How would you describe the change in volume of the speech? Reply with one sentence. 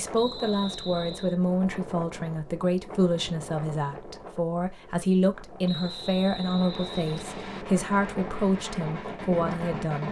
The loudness of the speech stays about the same.